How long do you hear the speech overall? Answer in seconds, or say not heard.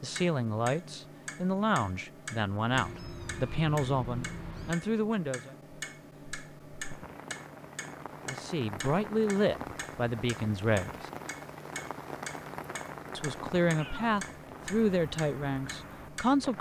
12 s.